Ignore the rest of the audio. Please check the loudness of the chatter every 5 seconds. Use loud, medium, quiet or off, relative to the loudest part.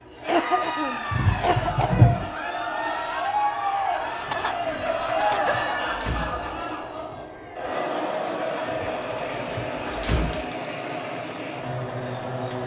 loud, loud, medium.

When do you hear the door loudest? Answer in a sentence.
The volume of the door peaks at 2 seconds.